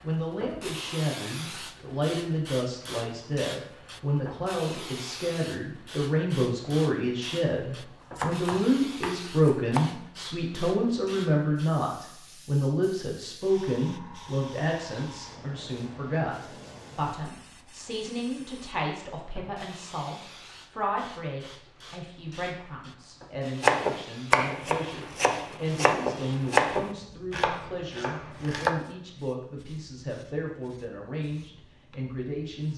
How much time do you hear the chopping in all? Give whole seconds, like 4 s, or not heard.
7 s.